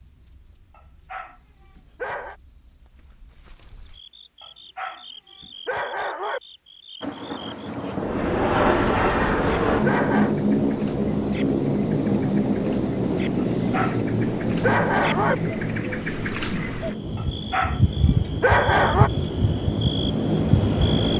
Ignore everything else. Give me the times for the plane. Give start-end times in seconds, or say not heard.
8.0-21.1.